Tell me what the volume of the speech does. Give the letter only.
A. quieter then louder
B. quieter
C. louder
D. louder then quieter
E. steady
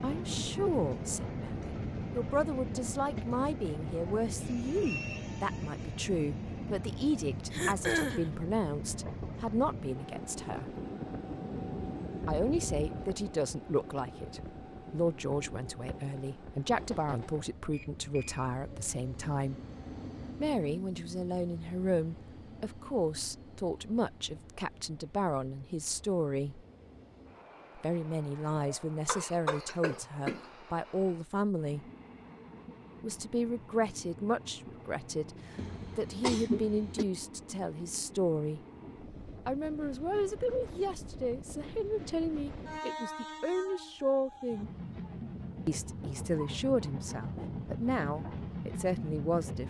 E.